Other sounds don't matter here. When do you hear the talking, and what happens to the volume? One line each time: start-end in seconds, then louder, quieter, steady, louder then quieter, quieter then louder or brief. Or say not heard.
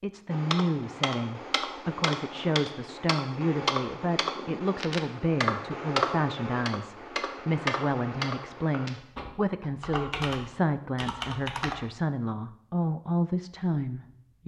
0.0-14.4 steady.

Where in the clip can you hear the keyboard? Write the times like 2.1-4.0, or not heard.
0.3-11.8.